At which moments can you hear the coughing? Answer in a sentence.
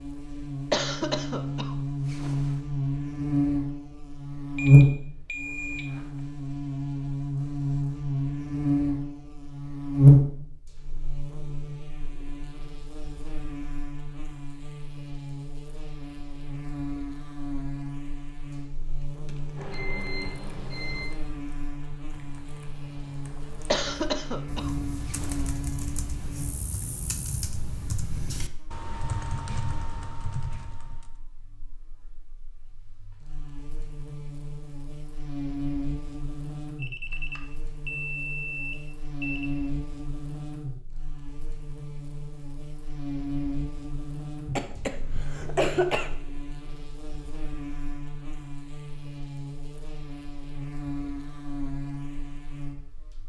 The coughing can be heard from 0.7 to 2.5 s, from 23.7 to 25.5 s and from 44.5 to 46.1 s.